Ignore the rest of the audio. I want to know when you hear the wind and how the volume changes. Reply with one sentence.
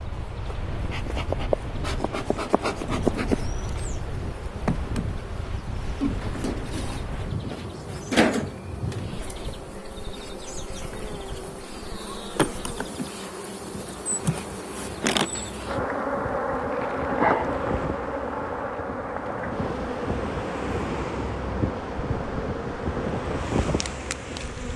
The wind can be heard from 0.0 to 24.7 s, getting quieter then louder.